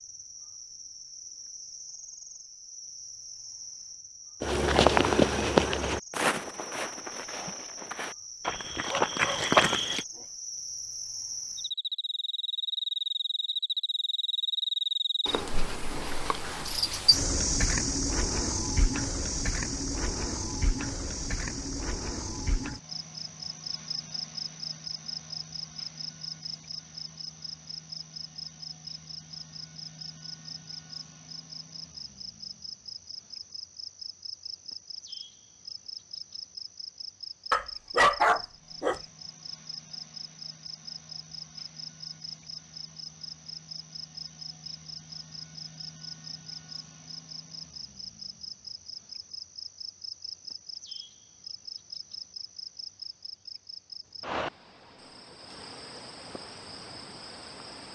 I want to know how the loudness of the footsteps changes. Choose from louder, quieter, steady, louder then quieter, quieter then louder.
quieter then louder.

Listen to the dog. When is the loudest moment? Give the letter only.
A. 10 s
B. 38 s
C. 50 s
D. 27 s
B.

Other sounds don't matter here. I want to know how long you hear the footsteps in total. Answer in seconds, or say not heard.
6 s.